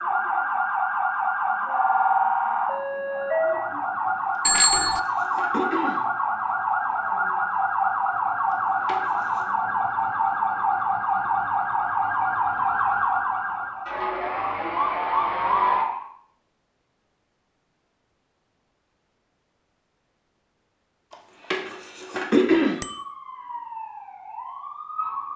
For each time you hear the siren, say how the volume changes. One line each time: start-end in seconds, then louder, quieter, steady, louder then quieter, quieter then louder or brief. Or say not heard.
0.0-16.1 steady
22.8-25.3 brief.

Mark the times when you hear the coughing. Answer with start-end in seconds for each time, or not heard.
4.3-6.0, 8.5-9.4, 21.1-22.8.